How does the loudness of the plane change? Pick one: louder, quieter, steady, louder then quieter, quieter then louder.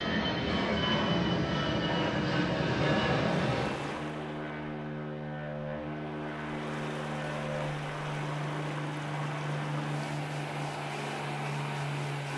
quieter.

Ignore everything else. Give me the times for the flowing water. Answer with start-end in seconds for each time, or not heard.
3.4-12.3.